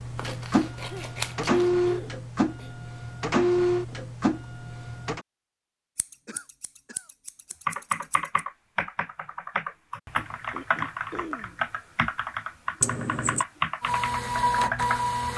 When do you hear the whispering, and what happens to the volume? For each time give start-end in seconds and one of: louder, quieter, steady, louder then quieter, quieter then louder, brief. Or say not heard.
not heard.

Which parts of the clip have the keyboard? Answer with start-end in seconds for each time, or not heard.
7.7-15.3.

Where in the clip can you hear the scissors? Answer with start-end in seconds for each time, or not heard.
0.1-1.6, 6.0-8.4, 12.8-13.4.